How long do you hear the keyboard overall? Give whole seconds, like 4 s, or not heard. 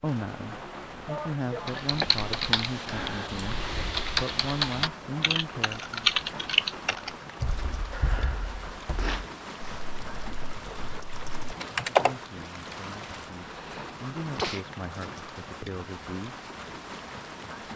11 s.